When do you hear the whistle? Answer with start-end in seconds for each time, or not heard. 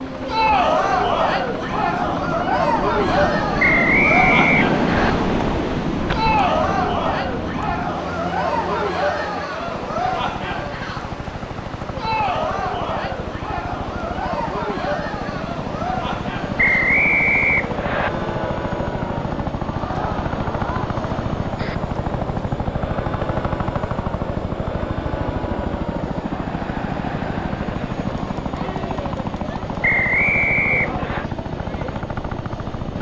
3.5-5.1, 16.6-18.1, 29.8-31.2.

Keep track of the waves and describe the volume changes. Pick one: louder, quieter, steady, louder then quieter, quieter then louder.
louder then quieter.